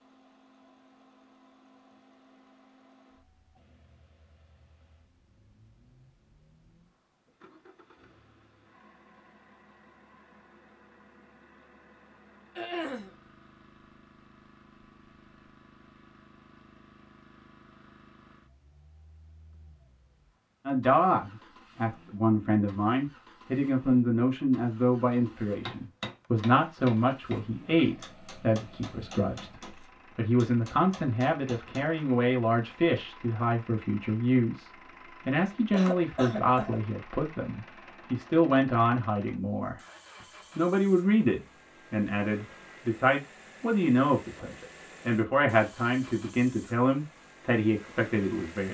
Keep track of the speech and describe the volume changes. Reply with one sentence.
The volume of the speech stays about the same.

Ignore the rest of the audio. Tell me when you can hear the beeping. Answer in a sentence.
You can't hear the beeping here.